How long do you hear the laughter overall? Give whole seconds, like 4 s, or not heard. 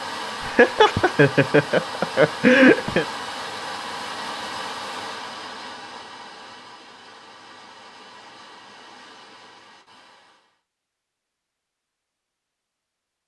3 s.